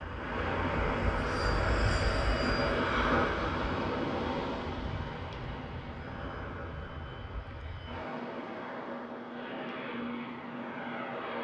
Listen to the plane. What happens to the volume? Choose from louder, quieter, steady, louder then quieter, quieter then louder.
quieter then louder.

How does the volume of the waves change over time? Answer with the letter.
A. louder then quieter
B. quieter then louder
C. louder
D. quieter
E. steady
D.